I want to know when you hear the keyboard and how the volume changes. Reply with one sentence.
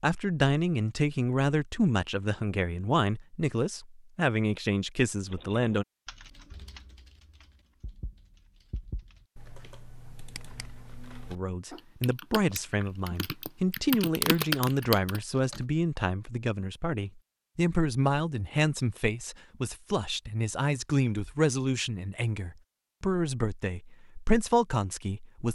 The keyboard can be heard from 5.3 to 15.7 s, getting louder.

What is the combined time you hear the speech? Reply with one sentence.
You can hear the speech for 20 seconds altogether.